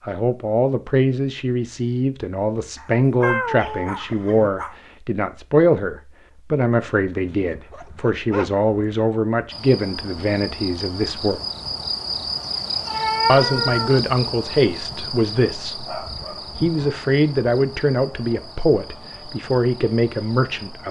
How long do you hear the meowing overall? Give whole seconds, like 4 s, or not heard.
3 s.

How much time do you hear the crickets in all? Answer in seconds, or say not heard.
11 s.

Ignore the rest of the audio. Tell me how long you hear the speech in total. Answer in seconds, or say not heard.
18 s.